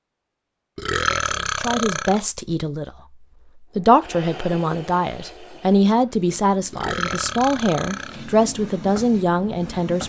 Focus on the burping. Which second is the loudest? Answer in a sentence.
The volume of the burping peaks at 1 second.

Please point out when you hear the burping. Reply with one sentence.
The burping can be heard from 0.8 to 2.2 s and from 6.7 to 8.2 s.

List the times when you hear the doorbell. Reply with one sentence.
The doorbell can't be heard in this clip.